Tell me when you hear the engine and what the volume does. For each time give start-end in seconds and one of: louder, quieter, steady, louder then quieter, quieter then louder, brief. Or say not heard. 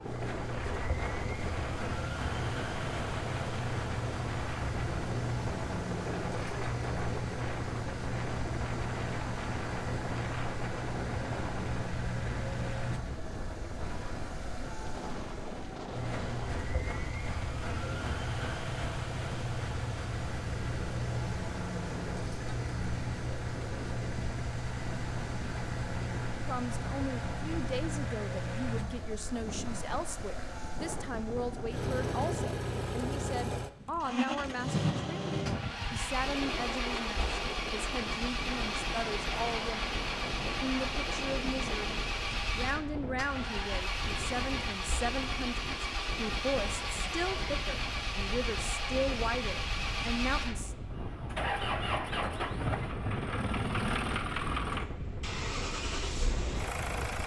0.0-57.2 steady.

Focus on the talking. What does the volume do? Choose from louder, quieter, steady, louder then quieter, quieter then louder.
steady.